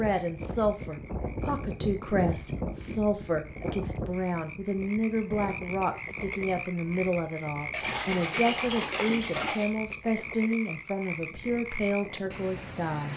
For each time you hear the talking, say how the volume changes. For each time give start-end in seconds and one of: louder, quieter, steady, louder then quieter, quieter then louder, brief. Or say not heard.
0.0-13.1 steady.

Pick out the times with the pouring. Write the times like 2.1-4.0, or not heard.
7.7-9.7.